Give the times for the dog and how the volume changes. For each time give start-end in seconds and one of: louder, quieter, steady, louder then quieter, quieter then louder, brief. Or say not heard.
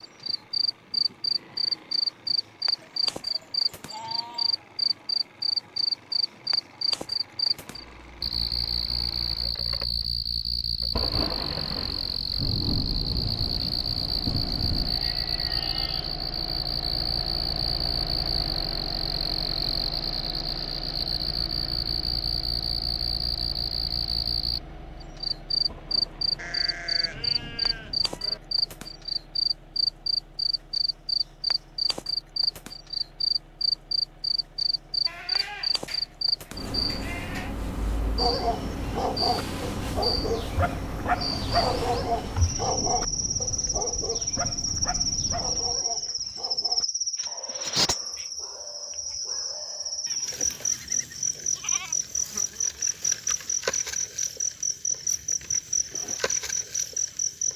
38.1-50.1 quieter.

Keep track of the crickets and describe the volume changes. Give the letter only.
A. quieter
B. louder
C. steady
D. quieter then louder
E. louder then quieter
C.